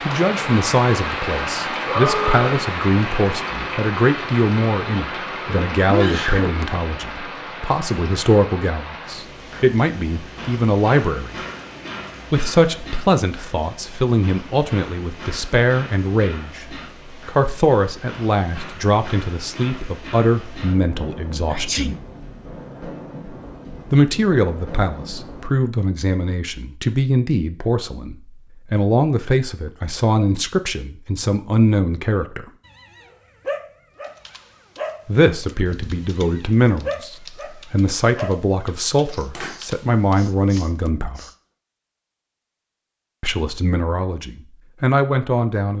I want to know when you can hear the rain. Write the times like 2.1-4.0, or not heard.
0.0-25.6.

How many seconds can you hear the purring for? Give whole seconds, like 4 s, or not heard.
not heard.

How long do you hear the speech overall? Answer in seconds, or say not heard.
38 s.